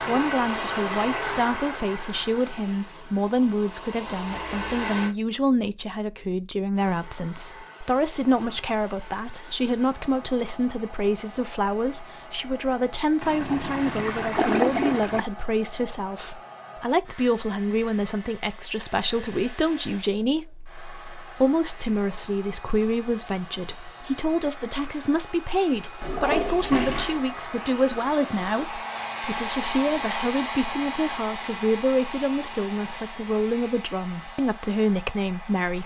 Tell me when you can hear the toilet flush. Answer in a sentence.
You can hear the toilet flush from 13.2 to 15.2 s and from 26.0 to 27.2 s.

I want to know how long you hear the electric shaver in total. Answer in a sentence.
You can't hear the electric shaver here.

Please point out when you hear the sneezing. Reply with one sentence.
You can't hear the sneezing here.